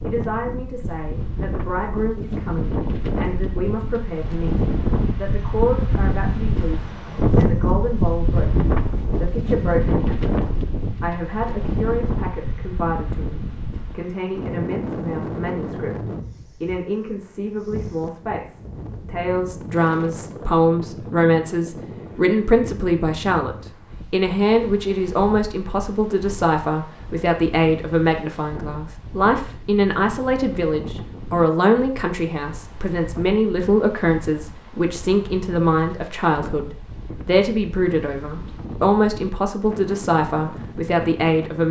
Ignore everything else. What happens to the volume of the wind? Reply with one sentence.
The volume of the wind goes down.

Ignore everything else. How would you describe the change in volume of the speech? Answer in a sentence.
The loudness of the speech goes up.